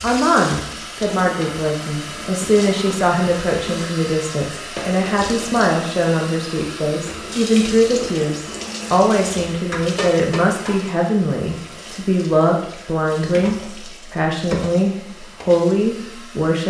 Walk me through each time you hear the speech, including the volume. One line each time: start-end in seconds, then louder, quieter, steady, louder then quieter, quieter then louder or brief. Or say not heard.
0.0-16.6 steady.